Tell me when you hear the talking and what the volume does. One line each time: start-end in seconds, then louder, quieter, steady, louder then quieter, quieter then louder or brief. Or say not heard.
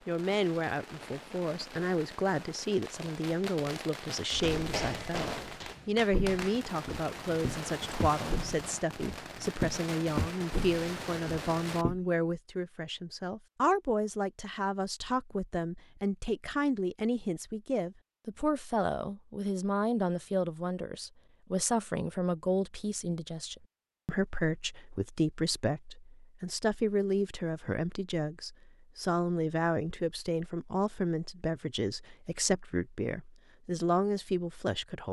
0.1-35.0 steady.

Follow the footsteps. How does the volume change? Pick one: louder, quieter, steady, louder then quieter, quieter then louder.
louder then quieter.